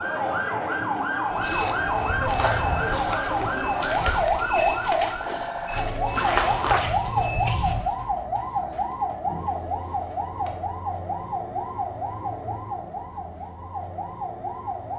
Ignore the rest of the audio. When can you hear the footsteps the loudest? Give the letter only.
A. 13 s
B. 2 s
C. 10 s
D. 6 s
D.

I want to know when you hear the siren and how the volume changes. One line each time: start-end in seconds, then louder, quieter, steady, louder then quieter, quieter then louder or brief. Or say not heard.
0.0-14.9 quieter.